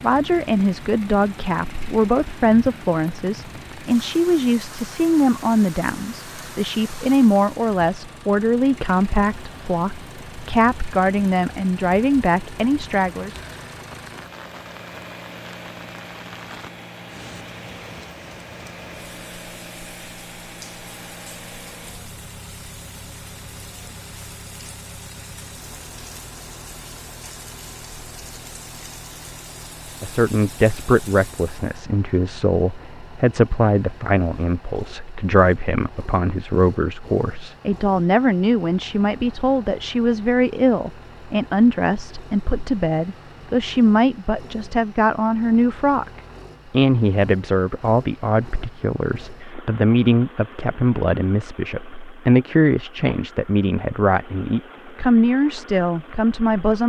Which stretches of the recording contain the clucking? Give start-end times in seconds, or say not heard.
not heard.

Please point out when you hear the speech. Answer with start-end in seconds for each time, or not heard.
0.0-13.3, 30.0-46.1, 46.7-56.8.